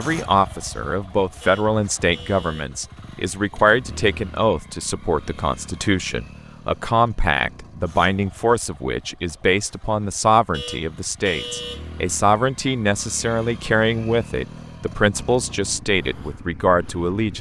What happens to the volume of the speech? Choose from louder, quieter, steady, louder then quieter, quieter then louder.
steady.